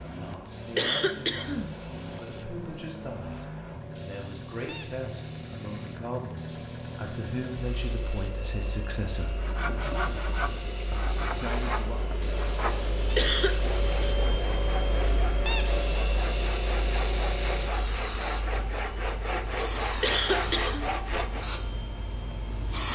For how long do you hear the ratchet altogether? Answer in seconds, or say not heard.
not heard.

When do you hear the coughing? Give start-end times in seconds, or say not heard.
0.8-1.8, 13.2-13.6, 20.0-20.9.